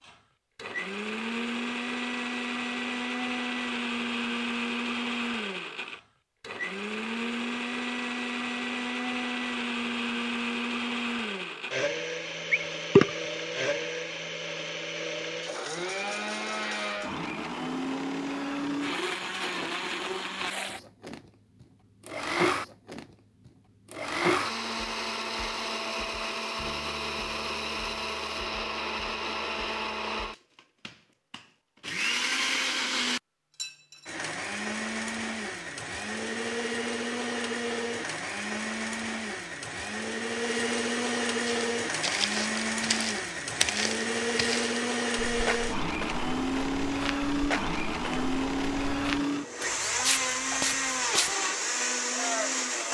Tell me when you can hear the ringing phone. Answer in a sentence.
The ringing phone can be heard from 12.5 to 13.1 s.